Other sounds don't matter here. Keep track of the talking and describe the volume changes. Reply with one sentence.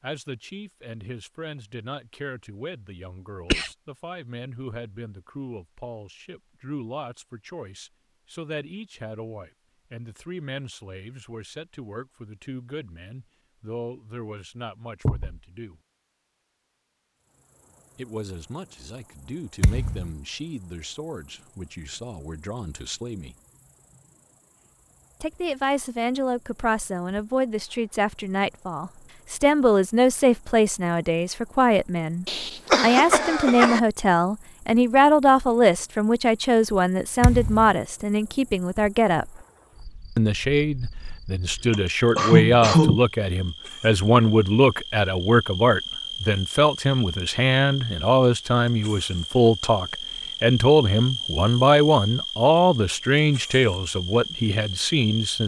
The loudness of the talking goes up.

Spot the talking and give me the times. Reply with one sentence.
The talking can be heard from 0.0 to 15.8 s, from 17.9 to 23.4 s, from 25.2 to 39.3 s and from 40.1 to 55.4 s.